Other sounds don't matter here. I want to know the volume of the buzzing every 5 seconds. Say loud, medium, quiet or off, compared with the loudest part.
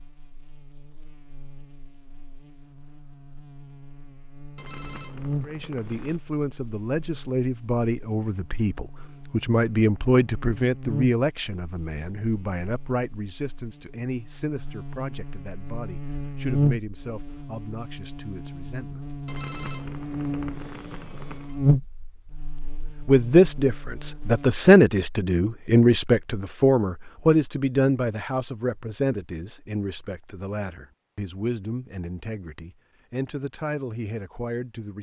quiet, medium, medium, loud, loud, off, off.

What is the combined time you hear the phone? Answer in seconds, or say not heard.
4 s.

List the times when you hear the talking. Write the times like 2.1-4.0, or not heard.
5.4-19.0, 23.0-34.9.